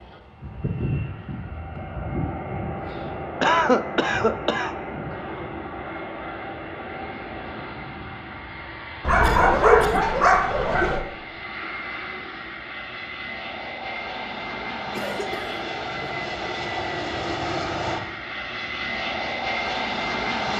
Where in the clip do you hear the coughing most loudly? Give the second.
4 s.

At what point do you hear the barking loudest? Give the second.
10 s.